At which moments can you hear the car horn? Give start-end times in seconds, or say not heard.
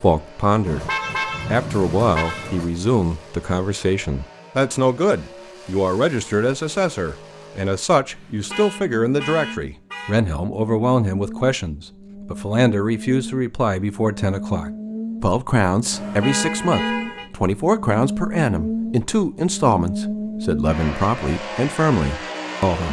0.7-2.6, 8.1-10.2, 15.9-17.2.